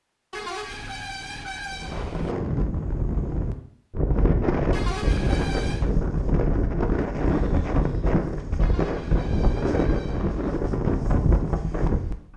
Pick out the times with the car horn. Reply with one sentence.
You can hear the car horn from 0.3 to 2.4 s, from 4.7 to 5.9 s and from 8.6 to 10.6 s.